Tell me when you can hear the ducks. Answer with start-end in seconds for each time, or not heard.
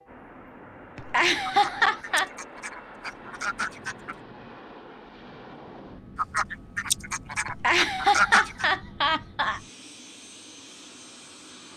1.4-4.2, 6.2-8.7.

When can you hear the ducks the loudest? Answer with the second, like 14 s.
8 s.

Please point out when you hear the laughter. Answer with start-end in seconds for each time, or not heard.
0.9-2.3, 7.5-9.6.